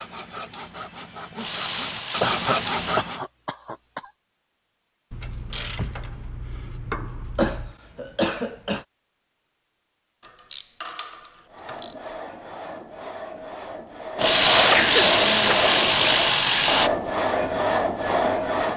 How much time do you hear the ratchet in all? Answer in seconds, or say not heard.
9 s.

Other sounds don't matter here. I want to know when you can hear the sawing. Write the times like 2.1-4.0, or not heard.
0.0-3.2, 11.4-18.7.